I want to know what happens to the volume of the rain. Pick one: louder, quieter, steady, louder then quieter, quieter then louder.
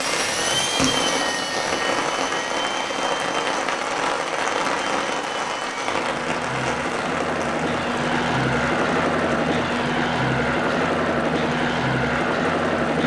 quieter.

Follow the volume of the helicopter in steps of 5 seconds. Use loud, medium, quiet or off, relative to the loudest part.
medium, loud, loud.